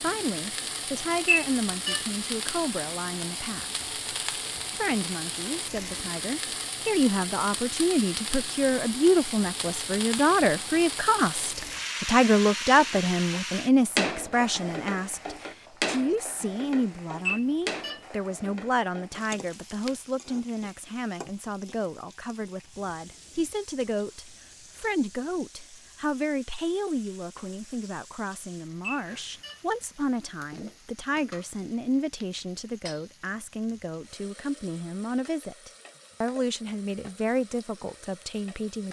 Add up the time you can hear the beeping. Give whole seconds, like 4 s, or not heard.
2 s.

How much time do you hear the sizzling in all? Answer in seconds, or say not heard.
39 s.